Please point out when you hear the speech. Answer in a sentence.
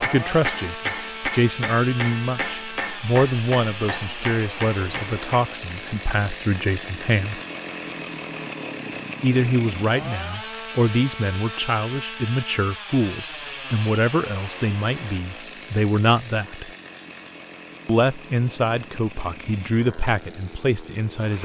You can hear the speech from 0.0 to 7.5 s, from 9.2 to 16.7 s and from 17.9 to 21.3 s.